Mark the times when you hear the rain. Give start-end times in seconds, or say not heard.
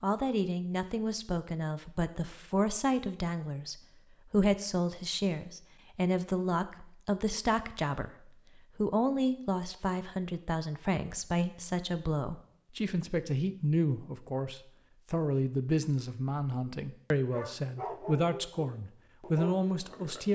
not heard.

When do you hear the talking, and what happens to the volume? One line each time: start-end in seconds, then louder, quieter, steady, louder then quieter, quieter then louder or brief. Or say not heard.
0.0-20.2 steady.